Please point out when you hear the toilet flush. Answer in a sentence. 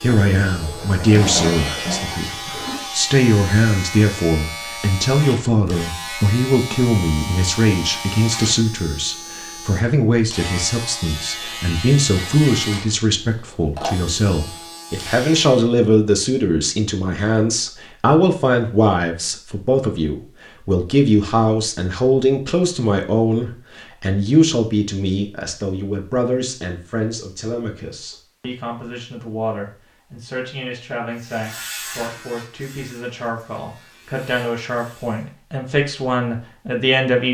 You can hear the toilet flush from 0.1 to 2.9 s.